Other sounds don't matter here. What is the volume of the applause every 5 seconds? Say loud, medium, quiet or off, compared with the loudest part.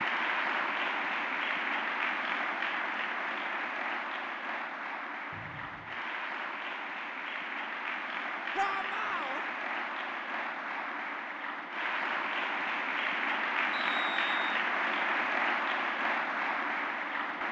loud, medium, loud, loud.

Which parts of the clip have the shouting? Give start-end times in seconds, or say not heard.
8.6-9.4.